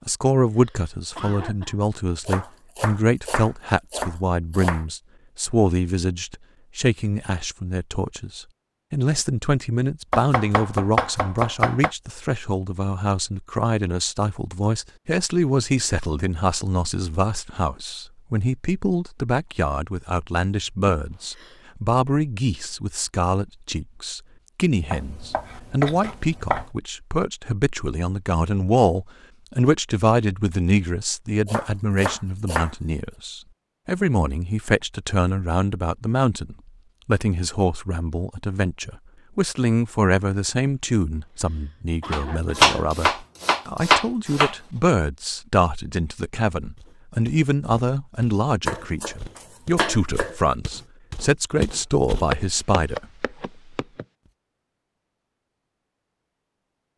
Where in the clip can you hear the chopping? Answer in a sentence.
You can hear the chopping from 2.2 to 4.8 s, from 10.1 to 11.9 s, from 24.9 to 26.6 s, from 31.4 to 32.7 s, from 42.1 to 44.5 s and from 48.6 to 50.4 s.